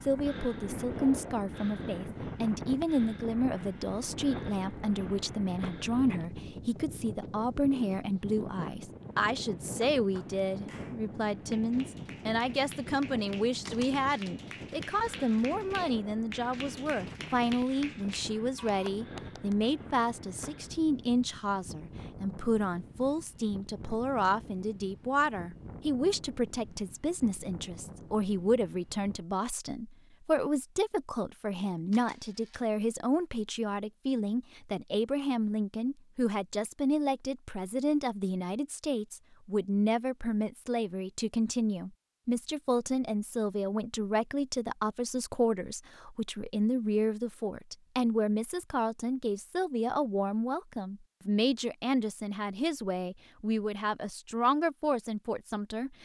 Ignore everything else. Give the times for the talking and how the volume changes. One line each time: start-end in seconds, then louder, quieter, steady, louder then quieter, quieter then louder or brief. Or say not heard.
0.0-56.0 steady.